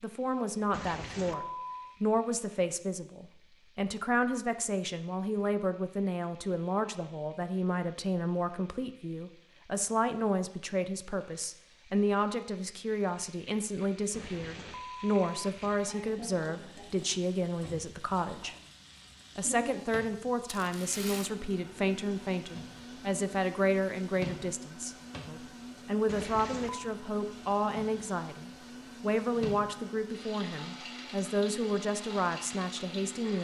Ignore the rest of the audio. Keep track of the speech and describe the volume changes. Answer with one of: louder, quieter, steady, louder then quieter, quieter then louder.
steady.